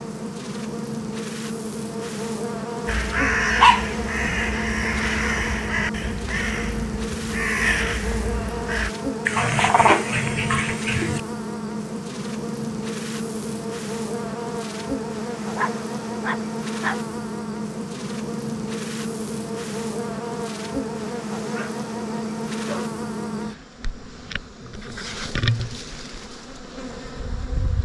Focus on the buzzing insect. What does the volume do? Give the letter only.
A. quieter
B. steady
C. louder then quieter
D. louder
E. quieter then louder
B.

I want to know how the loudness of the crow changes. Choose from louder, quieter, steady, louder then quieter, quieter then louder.
quieter then louder.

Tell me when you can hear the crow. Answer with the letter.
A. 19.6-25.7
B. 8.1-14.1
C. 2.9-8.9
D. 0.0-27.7
C.